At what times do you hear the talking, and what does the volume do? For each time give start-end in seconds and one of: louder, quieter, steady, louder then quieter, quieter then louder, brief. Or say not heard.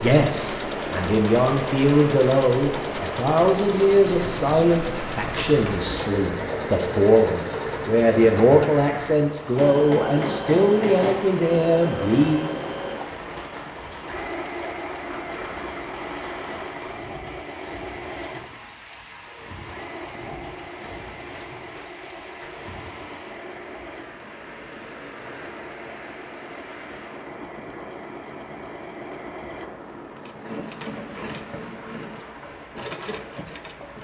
0.0-12.5 steady.